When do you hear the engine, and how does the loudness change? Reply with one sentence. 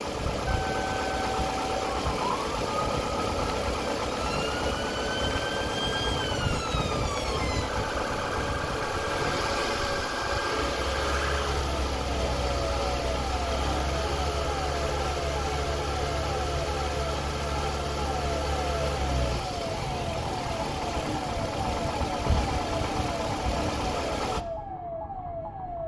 You can hear the engine from 0.0 to 24.4 s, at a steady volume.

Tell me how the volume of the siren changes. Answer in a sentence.
The volume of the siren stays about the same.